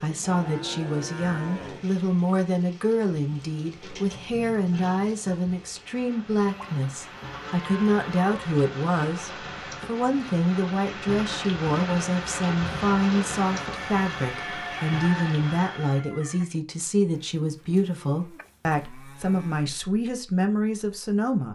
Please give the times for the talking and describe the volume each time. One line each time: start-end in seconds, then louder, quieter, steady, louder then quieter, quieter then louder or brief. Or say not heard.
0.0-21.5 steady.